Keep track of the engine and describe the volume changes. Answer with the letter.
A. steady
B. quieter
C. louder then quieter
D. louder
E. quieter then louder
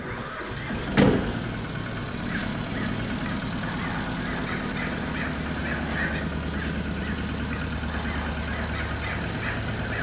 A.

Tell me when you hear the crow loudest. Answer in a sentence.
The volume of the crow peaks at 1 second.